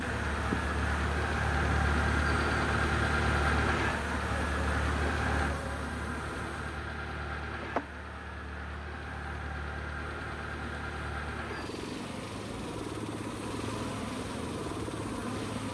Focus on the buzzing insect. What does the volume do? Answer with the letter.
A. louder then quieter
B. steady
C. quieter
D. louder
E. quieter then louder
E.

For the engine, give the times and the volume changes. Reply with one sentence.
You can hear the engine from 0.0 to 15.6 s, getting quieter.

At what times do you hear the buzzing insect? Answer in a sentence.
You can hear the buzzing insect from 0.0 to 15.6 s.